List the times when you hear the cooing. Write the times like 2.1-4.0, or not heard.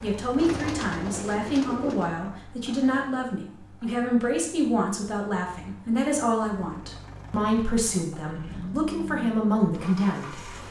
0.3-2.1.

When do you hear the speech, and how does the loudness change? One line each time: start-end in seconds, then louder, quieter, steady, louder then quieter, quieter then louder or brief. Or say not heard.
0.0-10.3 steady.